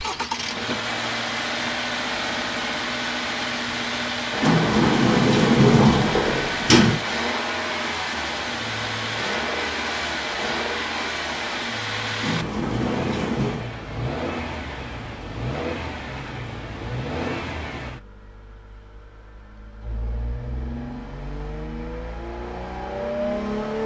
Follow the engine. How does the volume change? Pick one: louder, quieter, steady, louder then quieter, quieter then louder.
quieter.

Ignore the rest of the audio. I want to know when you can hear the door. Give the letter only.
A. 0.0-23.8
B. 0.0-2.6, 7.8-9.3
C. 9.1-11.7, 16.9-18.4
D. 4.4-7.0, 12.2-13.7
D.